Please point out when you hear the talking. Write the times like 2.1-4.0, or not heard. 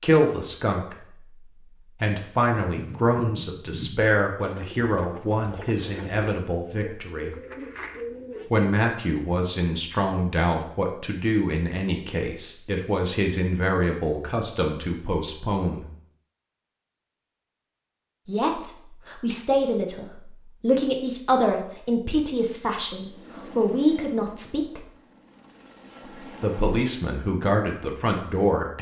0.0-7.3, 8.5-15.8, 18.2-24.9, 26.4-28.7.